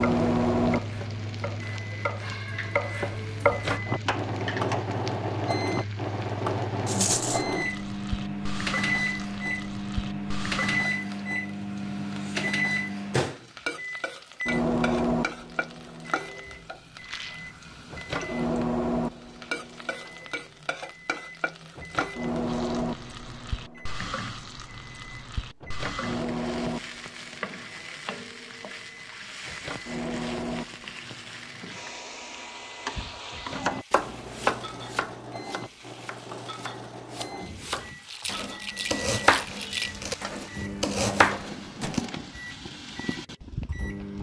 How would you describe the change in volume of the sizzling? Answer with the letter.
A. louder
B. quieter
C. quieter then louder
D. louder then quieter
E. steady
E.